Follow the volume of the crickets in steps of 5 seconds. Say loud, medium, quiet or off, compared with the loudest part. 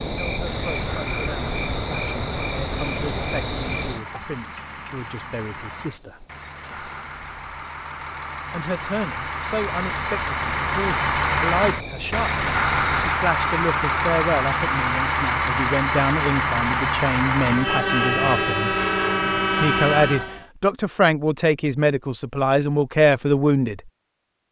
loud, medium, medium, off, off.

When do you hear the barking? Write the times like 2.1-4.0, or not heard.
not heard.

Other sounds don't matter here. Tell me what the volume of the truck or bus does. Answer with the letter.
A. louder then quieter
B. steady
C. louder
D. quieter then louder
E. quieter
C.